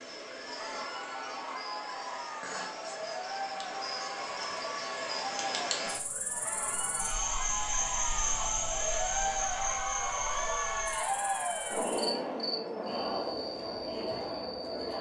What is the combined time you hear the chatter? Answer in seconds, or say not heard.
15 s.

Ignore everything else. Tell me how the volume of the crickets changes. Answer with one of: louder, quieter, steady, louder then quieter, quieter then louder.
louder then quieter.